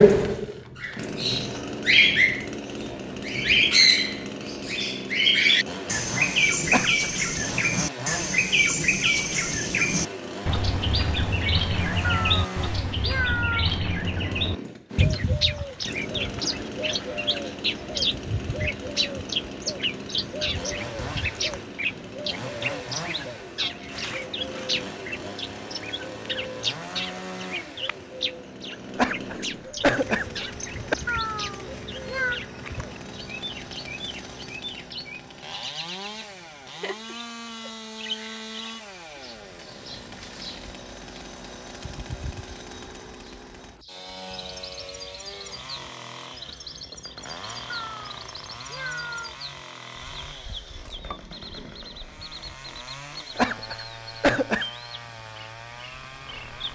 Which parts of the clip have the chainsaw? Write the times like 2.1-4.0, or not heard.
0.0-56.7.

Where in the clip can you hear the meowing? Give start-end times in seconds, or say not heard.
12.0-13.7, 31.1-32.4, 47.7-49.4.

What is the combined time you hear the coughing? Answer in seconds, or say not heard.
4 s.